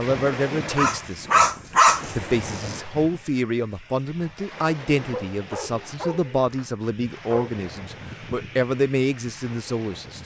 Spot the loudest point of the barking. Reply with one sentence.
The volume of the barking peaks at 2 seconds.